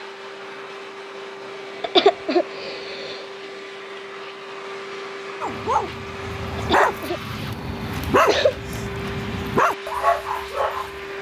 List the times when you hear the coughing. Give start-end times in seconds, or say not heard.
1.8-3.2, 6.5-8.6.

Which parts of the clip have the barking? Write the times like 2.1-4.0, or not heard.
5.4-10.9.